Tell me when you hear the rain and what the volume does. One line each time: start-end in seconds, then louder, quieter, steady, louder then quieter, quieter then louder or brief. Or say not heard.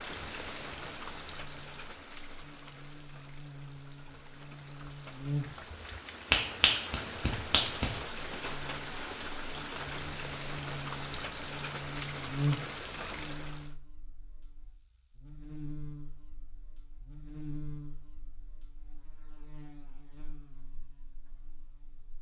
0.0-13.8 quieter then louder.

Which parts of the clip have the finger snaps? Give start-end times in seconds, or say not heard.
6.3-7.9.